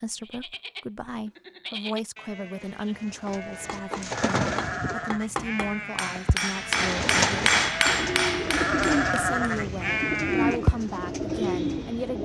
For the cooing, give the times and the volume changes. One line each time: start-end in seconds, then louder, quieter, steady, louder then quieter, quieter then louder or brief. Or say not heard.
2.5-5.1 brief
6.7-12.2 quieter then louder.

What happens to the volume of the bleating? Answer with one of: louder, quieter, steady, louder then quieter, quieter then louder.
louder.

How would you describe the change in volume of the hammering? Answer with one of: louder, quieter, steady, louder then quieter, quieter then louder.
louder.